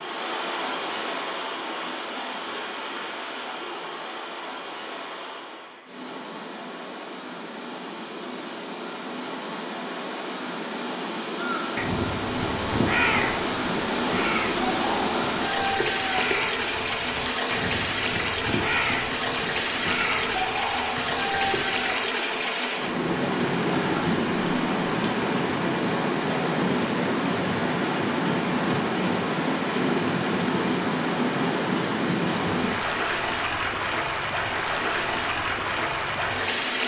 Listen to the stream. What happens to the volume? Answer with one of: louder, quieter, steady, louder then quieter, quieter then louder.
louder.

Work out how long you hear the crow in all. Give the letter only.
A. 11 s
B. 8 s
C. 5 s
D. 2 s
A.